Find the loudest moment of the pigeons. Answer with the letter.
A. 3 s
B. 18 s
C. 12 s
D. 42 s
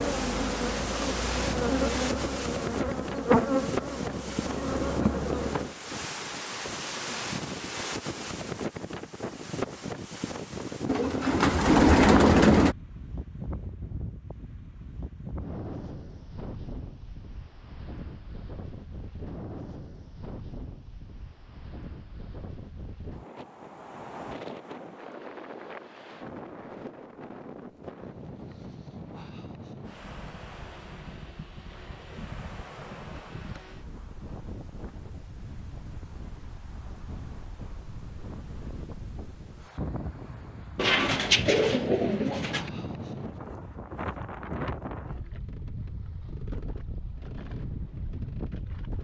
C.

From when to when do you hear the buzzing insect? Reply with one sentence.
The buzzing insect can be heard from 0.0 to 5.8 s.